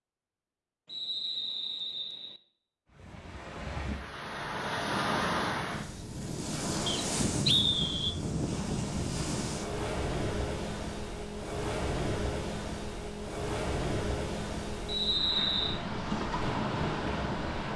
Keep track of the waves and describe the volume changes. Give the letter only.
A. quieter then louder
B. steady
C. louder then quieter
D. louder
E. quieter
B.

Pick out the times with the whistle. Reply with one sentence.
You can hear the whistle from 0.8 to 2.4 s, from 6.8 to 8.2 s and from 14.8 to 15.8 s.